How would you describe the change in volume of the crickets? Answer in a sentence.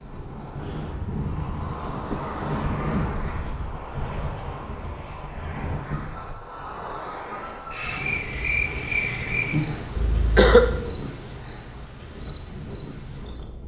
The loudness of the crickets goes up, then down.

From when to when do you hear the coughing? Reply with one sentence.
The coughing can be heard from 2.1 to 3.0 s and from 9.9 to 10.8 s.